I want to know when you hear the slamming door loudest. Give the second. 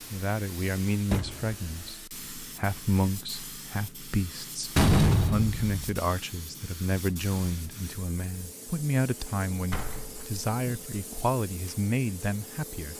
5 s.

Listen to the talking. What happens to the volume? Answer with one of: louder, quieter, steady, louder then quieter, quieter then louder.
steady.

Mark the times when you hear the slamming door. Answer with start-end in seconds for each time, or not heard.
1.1-1.6, 4.8-5.8, 9.7-10.8.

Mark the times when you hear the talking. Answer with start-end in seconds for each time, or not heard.
0.1-12.9.